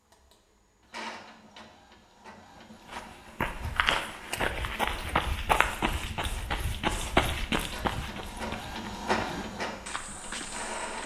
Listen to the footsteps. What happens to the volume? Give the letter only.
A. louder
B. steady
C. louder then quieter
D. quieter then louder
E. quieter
E.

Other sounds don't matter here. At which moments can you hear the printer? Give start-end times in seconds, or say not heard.
0.0-11.0.